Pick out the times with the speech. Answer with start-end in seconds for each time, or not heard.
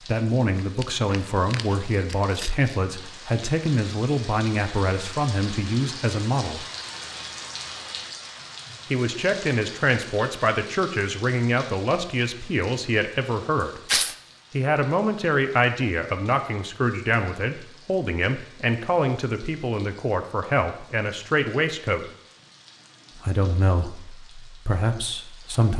0.1-6.7, 8.9-13.8, 14.5-22.1, 23.2-25.7.